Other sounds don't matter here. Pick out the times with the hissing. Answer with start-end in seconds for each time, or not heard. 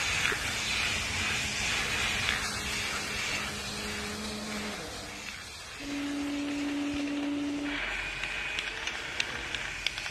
0.0-10.0.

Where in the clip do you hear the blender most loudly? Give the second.
7 s.